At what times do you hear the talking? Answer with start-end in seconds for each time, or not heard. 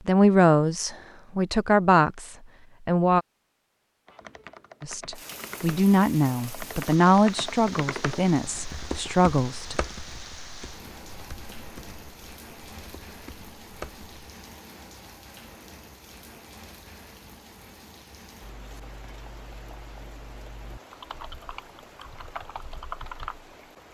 0.1-3.2, 4.8-9.8.